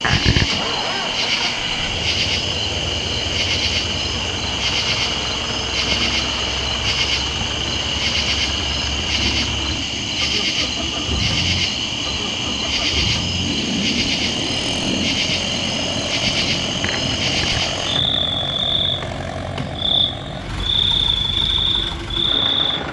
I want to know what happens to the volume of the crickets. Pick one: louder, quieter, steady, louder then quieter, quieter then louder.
steady.